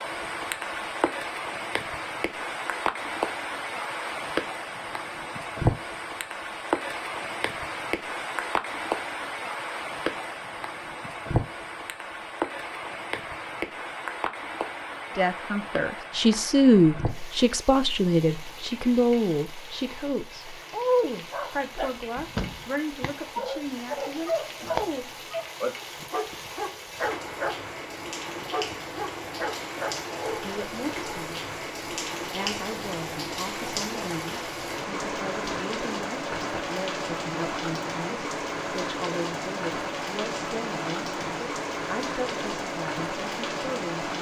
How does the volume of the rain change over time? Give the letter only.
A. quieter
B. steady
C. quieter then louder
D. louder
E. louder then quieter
C.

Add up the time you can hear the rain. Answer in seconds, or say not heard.
44 s.